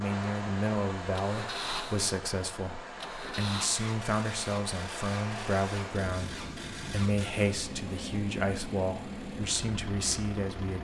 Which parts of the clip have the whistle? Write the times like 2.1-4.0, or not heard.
not heard.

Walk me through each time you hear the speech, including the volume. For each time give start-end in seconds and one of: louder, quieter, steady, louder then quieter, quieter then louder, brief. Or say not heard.
0.0-10.7 steady.